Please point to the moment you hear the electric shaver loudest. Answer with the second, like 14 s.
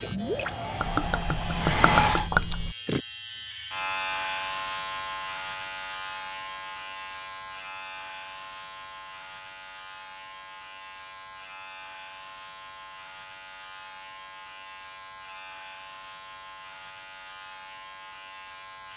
4 s.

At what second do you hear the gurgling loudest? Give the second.
2 s.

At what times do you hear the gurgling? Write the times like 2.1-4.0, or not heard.
0.0-3.0.